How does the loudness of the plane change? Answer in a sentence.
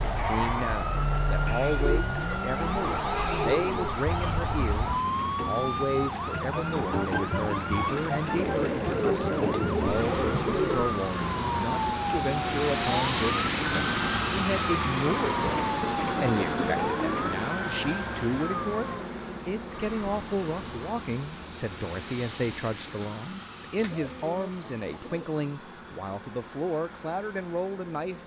The loudness of the plane goes up, then down.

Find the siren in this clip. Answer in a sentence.
You can hear the siren from 0.0 to 19.1 s.